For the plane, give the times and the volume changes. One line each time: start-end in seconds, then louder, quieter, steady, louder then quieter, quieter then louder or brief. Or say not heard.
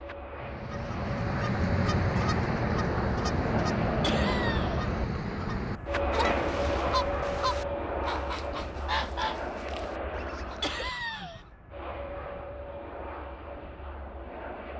0.0-14.7 louder then quieter.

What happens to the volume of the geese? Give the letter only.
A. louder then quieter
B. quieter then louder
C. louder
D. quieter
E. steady
D.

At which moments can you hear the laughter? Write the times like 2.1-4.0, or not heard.
4.0-4.8, 10.6-11.4.